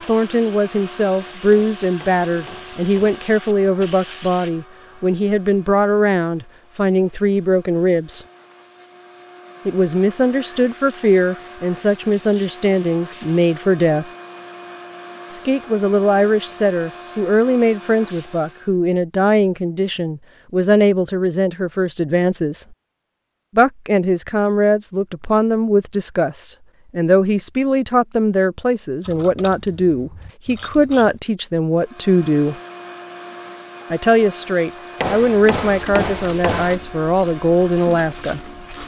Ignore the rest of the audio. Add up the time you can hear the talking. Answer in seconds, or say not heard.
34 s.